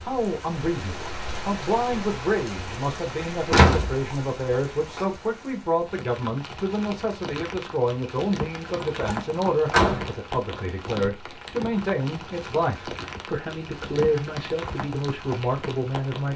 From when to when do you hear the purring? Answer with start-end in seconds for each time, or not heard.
not heard.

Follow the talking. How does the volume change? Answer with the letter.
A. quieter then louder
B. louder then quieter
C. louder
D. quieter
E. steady
E.